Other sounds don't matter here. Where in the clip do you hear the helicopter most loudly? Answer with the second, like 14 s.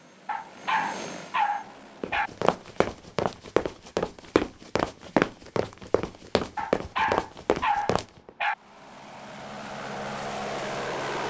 11 s.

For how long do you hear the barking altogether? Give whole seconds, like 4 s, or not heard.
4 s.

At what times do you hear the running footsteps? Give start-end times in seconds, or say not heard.
2.0-8.3.